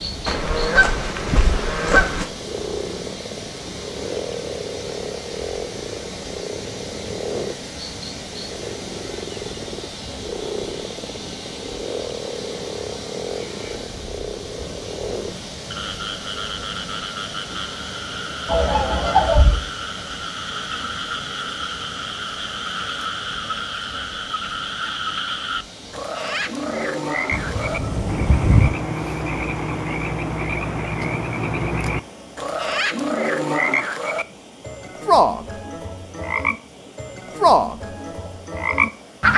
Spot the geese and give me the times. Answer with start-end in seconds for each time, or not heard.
0.2-2.2, 18.4-19.6, 27.3-28.7.